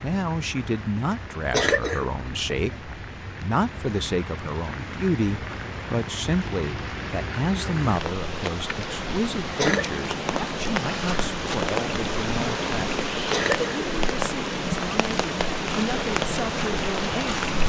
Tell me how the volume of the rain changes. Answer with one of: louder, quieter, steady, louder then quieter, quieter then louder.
louder.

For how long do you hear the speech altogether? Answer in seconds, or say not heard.
17 s.